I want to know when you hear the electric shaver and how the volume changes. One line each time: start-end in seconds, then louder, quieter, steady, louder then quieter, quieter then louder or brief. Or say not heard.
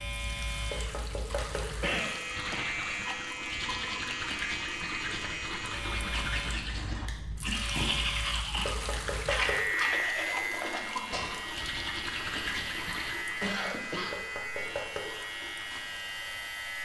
0.0-16.7 steady.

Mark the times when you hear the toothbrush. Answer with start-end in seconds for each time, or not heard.
2.2-13.2.